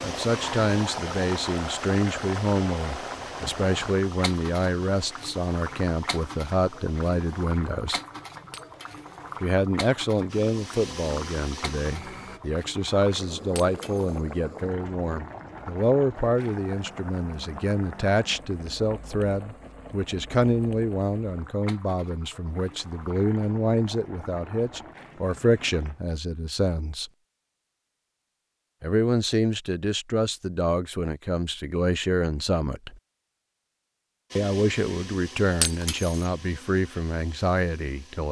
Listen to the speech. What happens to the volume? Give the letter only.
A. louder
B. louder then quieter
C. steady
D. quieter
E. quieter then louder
C.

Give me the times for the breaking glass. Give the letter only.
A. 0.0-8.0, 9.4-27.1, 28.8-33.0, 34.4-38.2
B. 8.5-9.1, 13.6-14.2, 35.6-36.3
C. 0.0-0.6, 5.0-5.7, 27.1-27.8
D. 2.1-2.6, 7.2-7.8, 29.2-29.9
B.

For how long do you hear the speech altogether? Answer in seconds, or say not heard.
34 s.